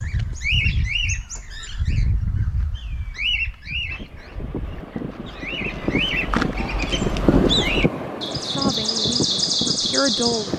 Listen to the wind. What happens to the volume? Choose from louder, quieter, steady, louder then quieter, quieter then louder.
louder then quieter.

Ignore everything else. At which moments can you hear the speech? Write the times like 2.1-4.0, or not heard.
8.3-10.5.